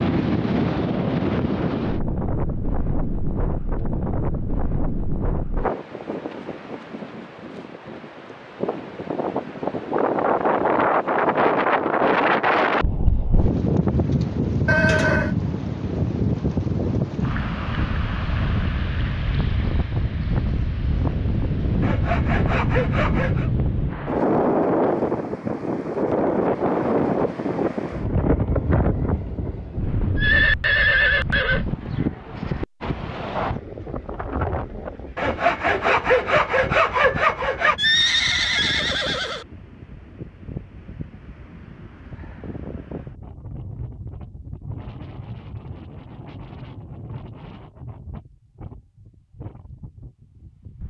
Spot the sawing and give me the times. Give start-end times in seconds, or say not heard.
21.8-23.5, 35.1-37.8.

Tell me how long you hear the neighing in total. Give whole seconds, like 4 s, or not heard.
4 s.